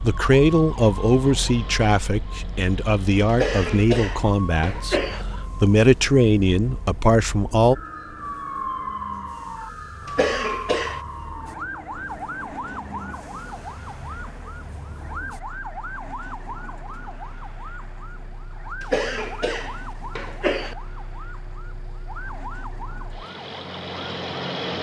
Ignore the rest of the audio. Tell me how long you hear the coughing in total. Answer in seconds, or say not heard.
5 s.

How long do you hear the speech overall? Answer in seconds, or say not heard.
7 s.